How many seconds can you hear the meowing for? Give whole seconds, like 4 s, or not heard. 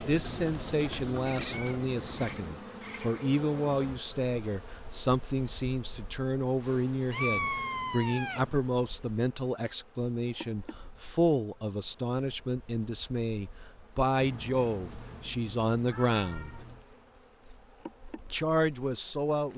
6 s.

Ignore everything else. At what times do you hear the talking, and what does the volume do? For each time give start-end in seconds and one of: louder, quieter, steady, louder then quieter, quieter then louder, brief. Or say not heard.
0.0-16.6 steady
18.3-19.5 brief.